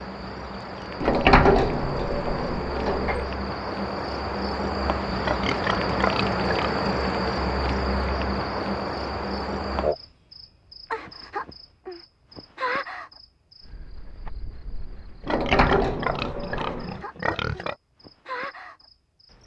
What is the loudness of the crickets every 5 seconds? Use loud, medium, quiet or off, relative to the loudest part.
medium, loud, medium, quiet.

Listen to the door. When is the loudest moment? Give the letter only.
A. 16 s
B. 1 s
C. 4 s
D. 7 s
B.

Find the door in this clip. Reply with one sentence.
You can hear the door from 1.0 to 3.3 s and from 15.2 to 17.0 s.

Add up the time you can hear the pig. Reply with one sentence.
You can hear the pig for 4 seconds altogether.